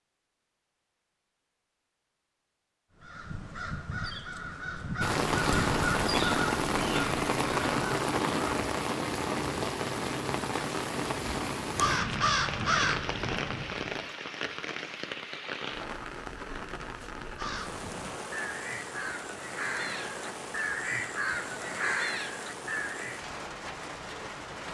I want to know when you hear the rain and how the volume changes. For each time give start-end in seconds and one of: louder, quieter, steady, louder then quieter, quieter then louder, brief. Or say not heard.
5.0-24.6 quieter.